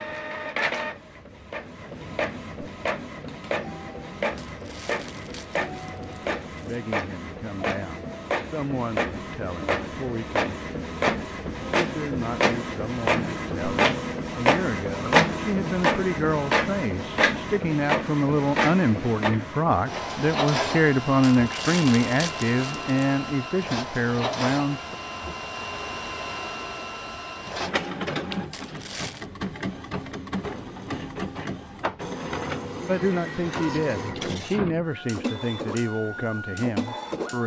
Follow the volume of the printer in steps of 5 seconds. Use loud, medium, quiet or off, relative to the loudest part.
medium, medium, loud, loud, medium, medium, medium, medium.